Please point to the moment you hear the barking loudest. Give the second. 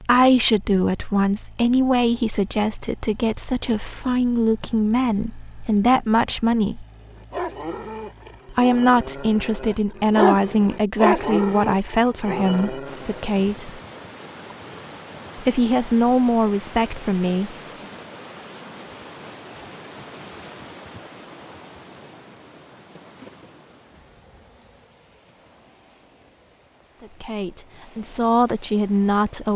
10 s.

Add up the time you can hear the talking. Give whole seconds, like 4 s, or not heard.
17 s.